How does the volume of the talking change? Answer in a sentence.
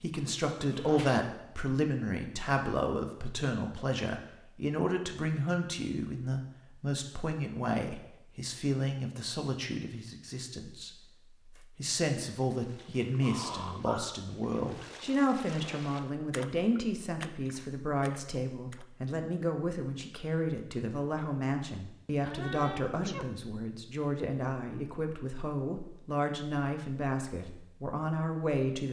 The loudness of the talking stays about the same.